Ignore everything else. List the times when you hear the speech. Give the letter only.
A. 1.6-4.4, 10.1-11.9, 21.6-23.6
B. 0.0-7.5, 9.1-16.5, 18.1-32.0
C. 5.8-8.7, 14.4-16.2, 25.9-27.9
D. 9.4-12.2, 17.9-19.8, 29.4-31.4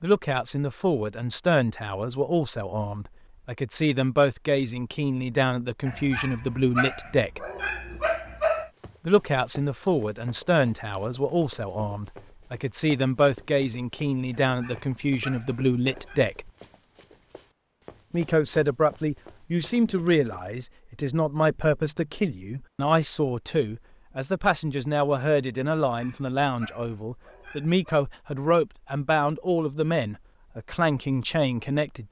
B.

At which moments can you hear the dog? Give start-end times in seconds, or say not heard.
5.8-8.7, 14.4-16.2, 25.9-27.9.